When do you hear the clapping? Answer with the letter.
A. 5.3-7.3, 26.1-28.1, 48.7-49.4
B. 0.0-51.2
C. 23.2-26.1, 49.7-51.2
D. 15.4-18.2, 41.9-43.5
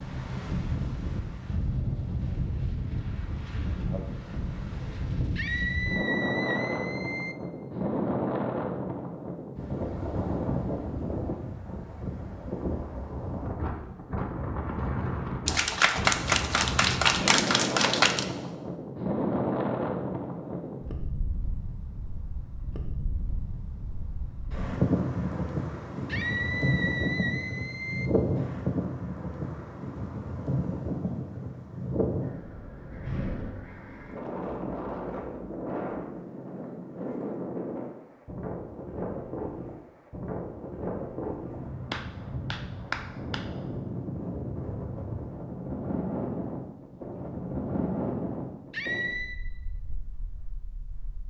D.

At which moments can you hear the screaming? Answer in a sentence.
The screaming can be heard from 5.3 to 7.3 s, from 26.1 to 28.1 s and from 48.7 to 49.4 s.